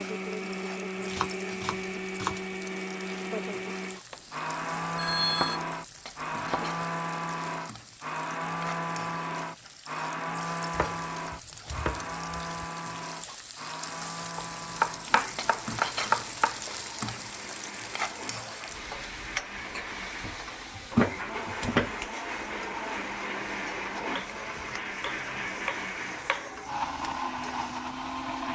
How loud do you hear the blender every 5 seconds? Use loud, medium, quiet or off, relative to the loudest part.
loud, loud, loud, medium, loud, loud.